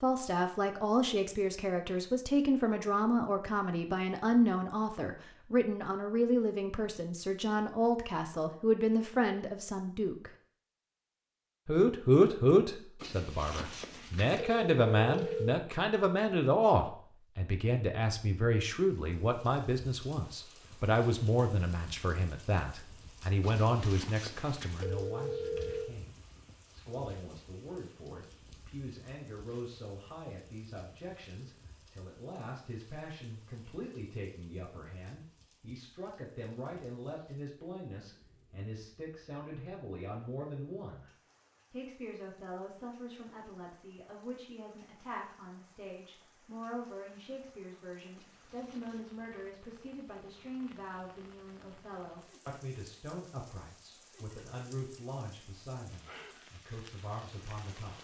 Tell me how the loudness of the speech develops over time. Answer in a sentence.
The volume of the speech goes down.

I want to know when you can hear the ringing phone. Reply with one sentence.
You can hear the ringing phone from 13.0 to 15.6 s, from 23.4 to 25.9 s and from 48.1 to 49.1 s.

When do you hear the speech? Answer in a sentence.
The speech can be heard from 0.0 to 10.3 s, from 11.7 to 41.1 s and from 41.7 to 57.9 s.